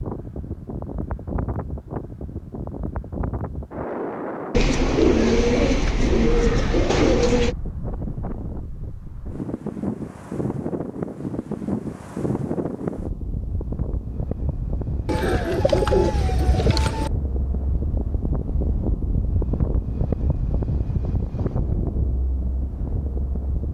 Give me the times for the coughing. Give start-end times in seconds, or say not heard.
not heard.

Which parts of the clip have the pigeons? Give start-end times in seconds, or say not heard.
4.5-7.5, 15.1-17.1.